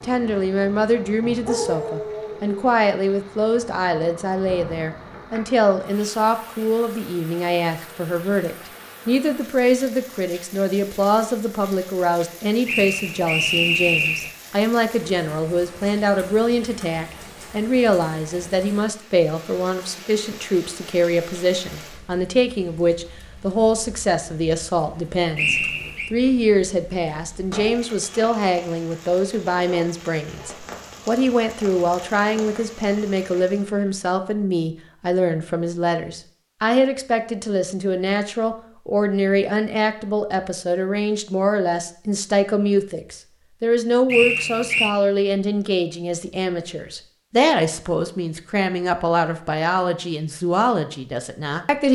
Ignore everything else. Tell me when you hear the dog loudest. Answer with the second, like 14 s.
2 s.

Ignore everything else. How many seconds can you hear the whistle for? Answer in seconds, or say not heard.
3 s.